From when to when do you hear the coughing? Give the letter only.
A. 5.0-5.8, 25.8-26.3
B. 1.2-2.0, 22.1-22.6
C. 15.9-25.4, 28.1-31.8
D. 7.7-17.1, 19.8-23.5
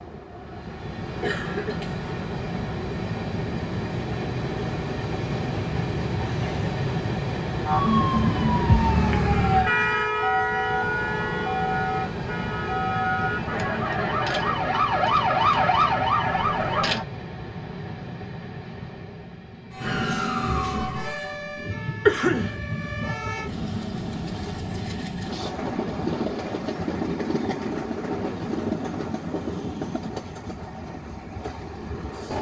B.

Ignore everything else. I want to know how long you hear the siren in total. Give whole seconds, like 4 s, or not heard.
13 s.